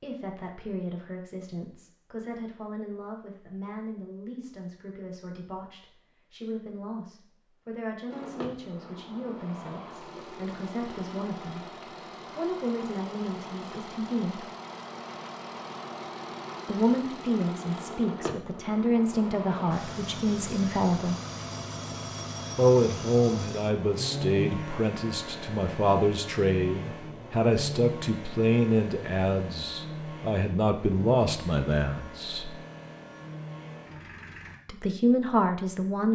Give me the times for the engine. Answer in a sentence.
You can hear the engine from 8.1 to 34.6 s.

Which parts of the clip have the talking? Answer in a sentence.
The talking can be heard from 0.0 to 14.4 s, from 16.6 to 21.1 s, from 22.6 to 32.5 s and from 34.6 to 36.1 s.